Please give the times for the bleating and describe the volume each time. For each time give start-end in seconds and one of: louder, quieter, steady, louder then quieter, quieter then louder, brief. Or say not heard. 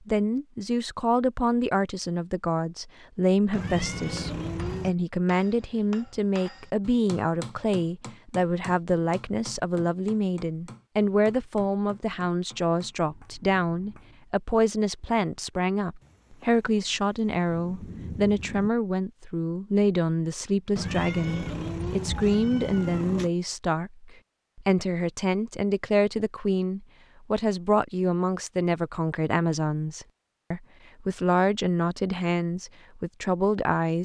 not heard.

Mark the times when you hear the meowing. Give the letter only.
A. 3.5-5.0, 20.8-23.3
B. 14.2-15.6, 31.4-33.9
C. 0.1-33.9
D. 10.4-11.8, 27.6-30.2
A.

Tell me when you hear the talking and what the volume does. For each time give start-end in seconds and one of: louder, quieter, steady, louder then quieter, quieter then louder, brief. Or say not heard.
0.1-33.9 steady.